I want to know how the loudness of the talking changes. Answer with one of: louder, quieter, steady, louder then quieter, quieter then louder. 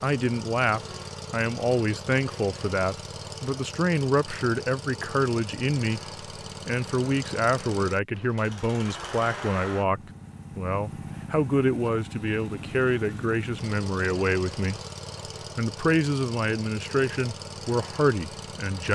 steady.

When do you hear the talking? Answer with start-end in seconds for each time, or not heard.
0.0-6.0, 6.7-14.8, 15.6-18.8.